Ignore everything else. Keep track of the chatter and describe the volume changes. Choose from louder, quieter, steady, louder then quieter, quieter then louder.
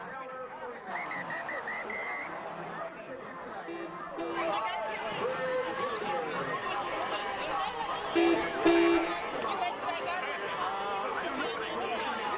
louder.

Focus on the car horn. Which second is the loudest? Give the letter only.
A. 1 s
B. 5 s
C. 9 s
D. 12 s
C.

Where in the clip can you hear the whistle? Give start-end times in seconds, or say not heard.
0.9-2.9.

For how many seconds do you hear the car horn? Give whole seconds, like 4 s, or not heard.
2 s.